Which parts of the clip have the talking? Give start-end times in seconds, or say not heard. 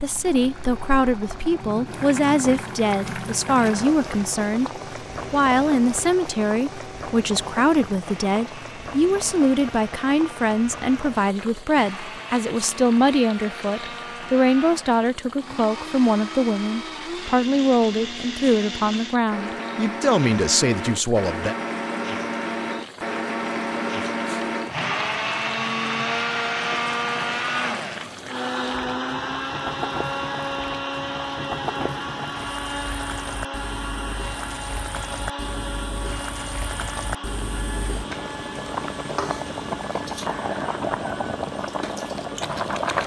0.0-4.7, 5.3-21.6.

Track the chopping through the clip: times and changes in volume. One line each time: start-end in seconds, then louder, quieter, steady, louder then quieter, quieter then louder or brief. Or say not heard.
not heard.